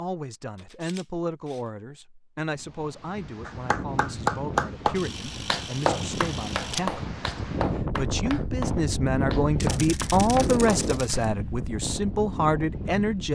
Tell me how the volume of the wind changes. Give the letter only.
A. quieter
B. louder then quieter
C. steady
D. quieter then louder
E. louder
B.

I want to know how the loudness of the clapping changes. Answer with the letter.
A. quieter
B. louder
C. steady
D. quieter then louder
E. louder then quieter
A.